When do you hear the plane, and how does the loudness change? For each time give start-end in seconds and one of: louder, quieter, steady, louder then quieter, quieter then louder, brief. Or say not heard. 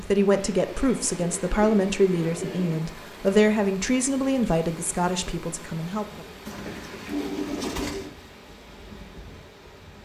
not heard.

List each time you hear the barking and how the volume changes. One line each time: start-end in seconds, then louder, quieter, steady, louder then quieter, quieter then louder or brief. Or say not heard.
not heard.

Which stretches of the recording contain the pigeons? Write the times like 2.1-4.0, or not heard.
0.3-2.9, 6.5-8.1.